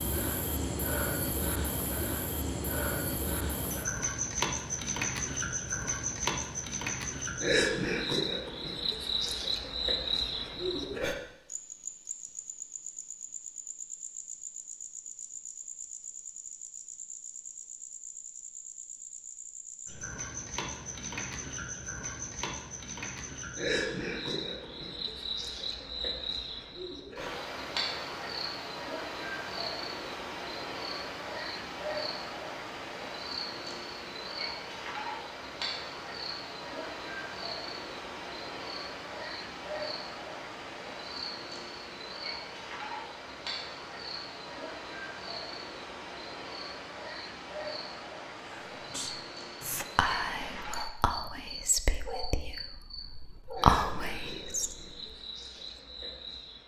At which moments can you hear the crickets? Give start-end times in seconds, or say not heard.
0.0-56.6.